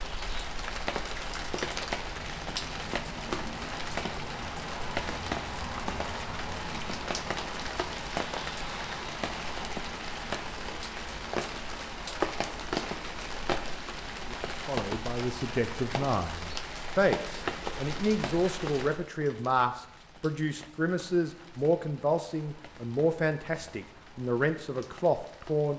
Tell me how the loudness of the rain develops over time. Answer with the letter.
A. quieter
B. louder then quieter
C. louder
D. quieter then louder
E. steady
A.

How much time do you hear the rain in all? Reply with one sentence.
You can hear the rain for 26 seconds altogether.